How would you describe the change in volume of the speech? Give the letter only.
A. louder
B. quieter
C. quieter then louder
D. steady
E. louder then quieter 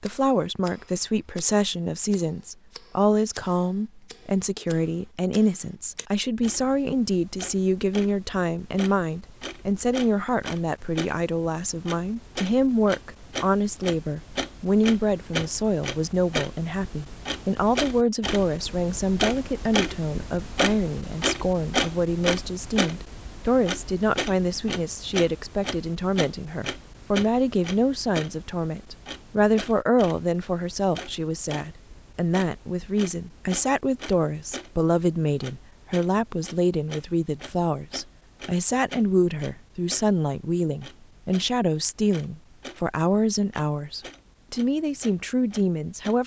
D.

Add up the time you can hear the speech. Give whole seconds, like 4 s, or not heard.
46 s.